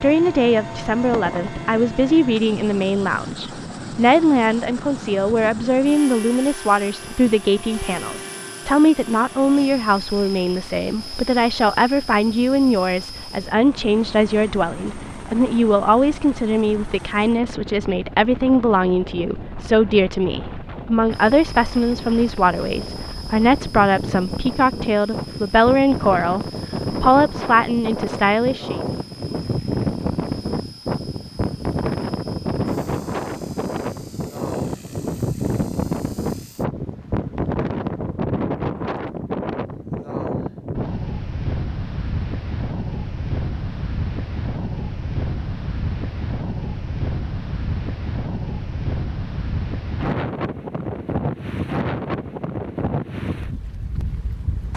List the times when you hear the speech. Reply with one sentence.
The speech can be heard from 0.0 to 28.8 s.